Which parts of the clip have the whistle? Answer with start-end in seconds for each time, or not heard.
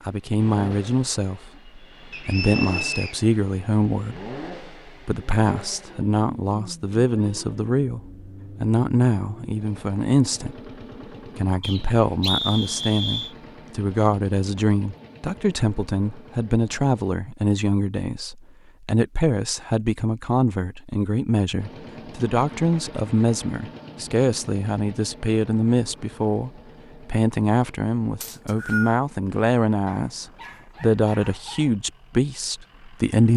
2.1-3.1, 11.6-13.3, 28.2-29.0.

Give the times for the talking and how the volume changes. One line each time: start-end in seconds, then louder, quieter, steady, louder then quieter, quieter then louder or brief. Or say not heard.
0.1-8.0 steady
8.6-33.3 steady.